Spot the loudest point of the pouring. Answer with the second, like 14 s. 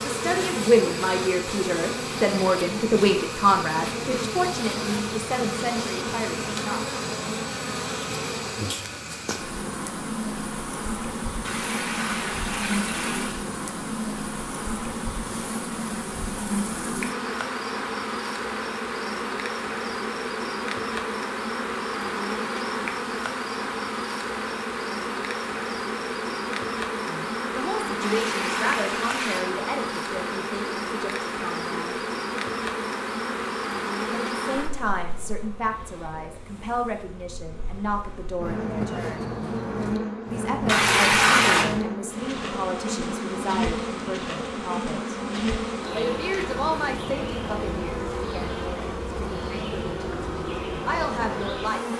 41 s.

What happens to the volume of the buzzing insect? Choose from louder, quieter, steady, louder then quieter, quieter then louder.
steady.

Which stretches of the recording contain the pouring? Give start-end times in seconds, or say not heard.
11.4-13.4, 28.0-29.4, 40.6-41.6.